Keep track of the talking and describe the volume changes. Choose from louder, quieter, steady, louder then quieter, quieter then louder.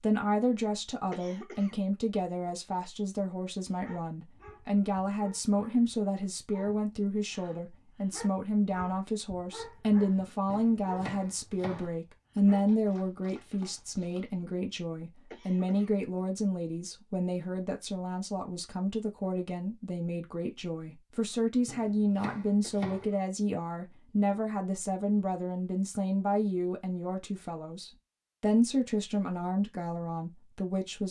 steady.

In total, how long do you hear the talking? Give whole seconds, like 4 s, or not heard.
31 s.